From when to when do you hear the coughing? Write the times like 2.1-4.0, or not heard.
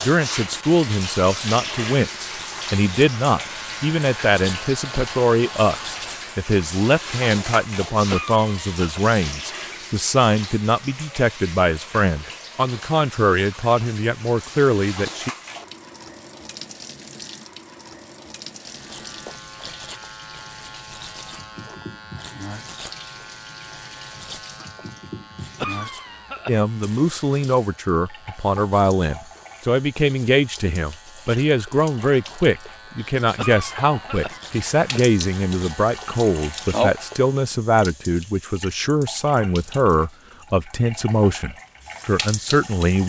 8.1-9.0, 25.6-26.6, 33.4-34.4.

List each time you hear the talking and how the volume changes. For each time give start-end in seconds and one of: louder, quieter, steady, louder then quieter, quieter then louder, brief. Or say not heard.
0.0-15.3 steady
26.4-43.0 steady.